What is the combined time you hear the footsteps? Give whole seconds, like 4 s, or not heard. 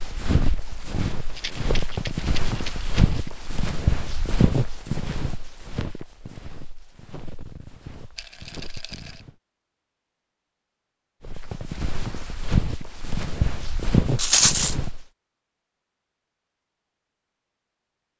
13 s.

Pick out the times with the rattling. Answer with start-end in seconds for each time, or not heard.
1.4-3.2, 8.2-9.2, 14.2-14.8.